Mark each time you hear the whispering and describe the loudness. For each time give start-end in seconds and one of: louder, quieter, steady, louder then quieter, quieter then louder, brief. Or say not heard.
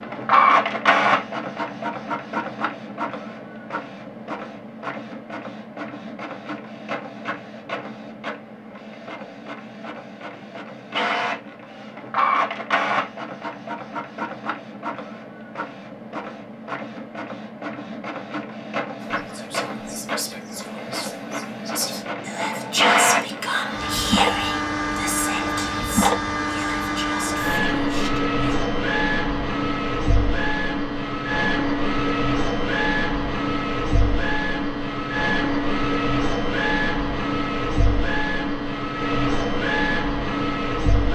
19.0-28.3 louder then quieter.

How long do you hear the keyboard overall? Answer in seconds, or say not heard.
not heard.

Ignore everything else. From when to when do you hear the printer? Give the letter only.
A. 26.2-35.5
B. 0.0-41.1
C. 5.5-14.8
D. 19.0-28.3
B.